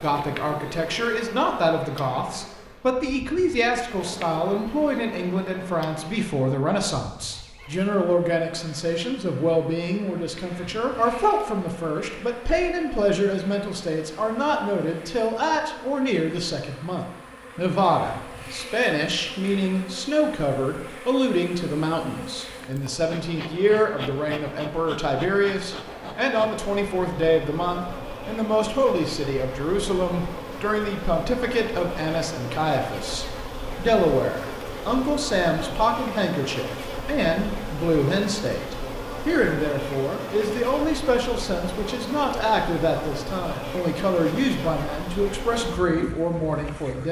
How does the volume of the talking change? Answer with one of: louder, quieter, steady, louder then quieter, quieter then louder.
steady.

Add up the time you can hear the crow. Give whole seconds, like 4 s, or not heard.
not heard.